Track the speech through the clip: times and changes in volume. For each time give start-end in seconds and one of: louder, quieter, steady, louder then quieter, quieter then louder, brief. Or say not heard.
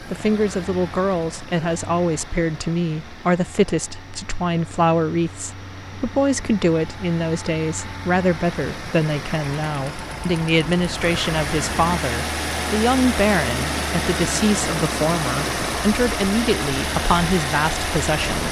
0.0-18.4 steady.